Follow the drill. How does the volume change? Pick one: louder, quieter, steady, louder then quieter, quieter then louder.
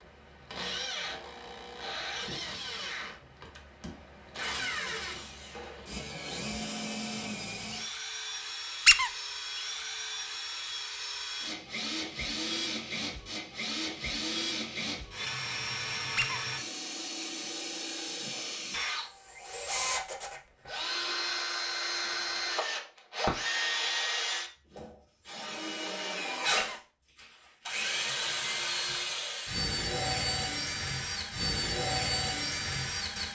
louder.